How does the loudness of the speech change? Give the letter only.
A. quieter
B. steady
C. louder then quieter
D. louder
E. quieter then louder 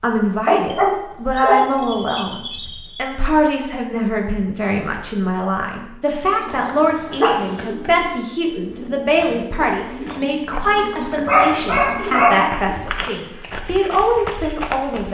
B.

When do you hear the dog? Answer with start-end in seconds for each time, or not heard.
0.5-3.0, 6.5-7.9, 11.1-12.5.